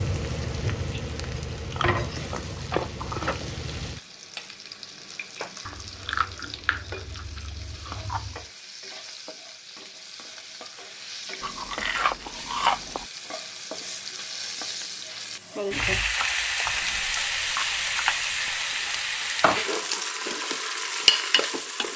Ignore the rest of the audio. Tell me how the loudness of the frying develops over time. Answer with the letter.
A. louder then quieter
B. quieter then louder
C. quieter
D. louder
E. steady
B.